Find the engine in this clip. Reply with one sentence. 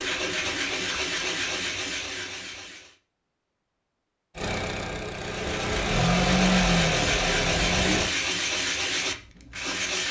The engine can be heard from 4.3 to 8.1 s.